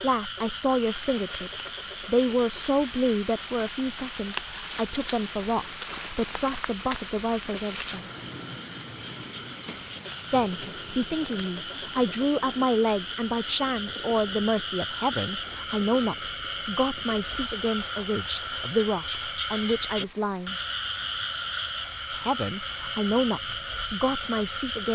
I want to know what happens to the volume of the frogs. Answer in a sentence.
The volume of the frogs goes up.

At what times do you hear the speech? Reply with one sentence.
The speech can be heard from 0.0 to 8.1 s, from 10.3 to 20.6 s and from 22.1 to 24.8 s.